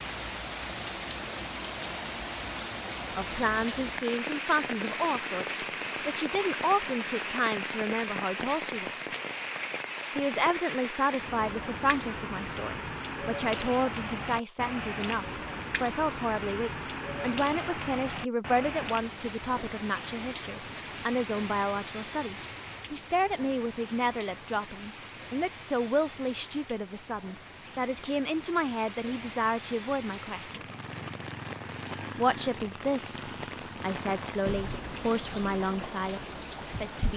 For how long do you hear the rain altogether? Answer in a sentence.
You can hear the rain for 37 seconds altogether.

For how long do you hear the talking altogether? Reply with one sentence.
You can hear the talking for 31 seconds altogether.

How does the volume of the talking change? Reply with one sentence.
The volume of the talking stays about the same.